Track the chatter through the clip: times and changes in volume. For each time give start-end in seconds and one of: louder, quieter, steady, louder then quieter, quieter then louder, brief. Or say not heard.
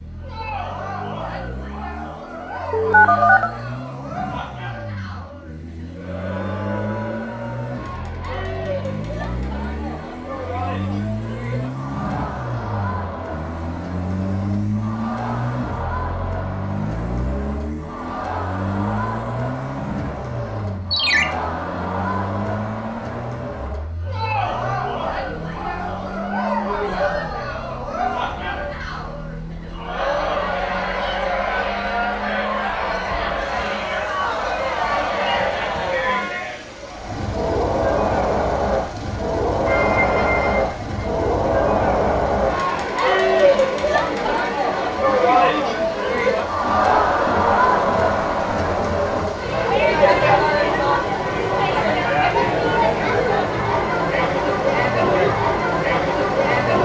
0.1-56.7 louder.